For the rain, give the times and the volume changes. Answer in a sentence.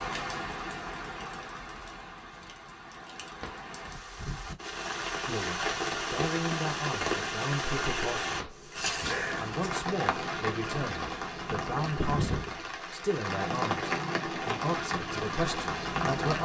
The rain can be heard from 0.0 to 16.3 s, getting louder.